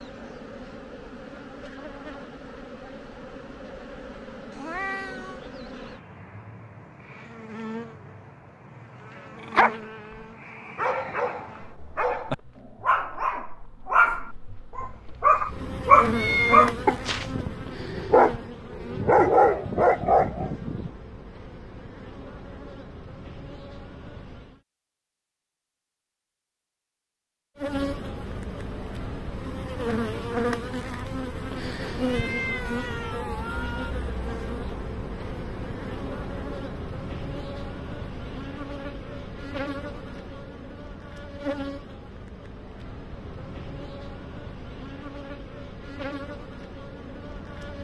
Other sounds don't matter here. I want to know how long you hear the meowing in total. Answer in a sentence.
The meowing can be heard for 4 seconds in total.